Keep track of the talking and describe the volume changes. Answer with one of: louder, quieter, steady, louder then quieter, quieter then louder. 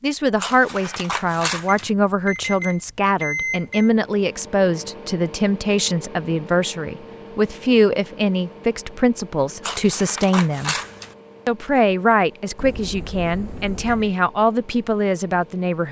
steady.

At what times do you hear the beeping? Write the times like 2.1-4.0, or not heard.
1.6-3.9, 12.6-14.2.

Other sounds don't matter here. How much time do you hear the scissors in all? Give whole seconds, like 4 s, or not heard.
3 s.